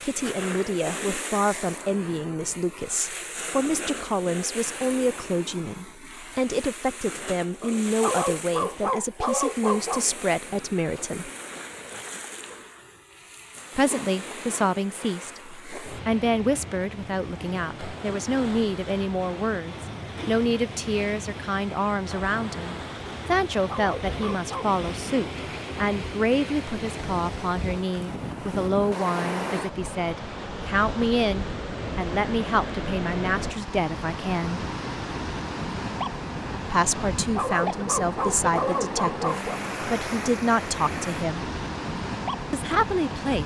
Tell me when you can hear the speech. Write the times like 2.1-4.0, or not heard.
0.0-11.3, 13.8-34.6, 36.7-41.5, 42.5-43.4.